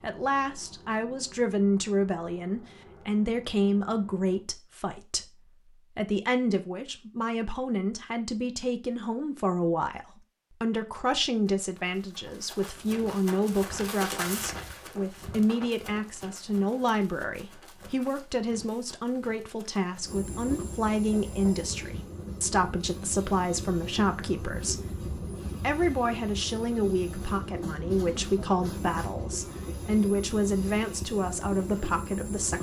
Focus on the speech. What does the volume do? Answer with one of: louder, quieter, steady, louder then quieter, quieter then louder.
steady.